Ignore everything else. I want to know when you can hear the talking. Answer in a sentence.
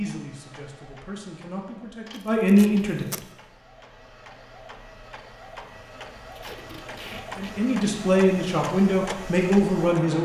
You can hear the talking from 0.0 to 3.0 s and from 7.3 to 10.2 s.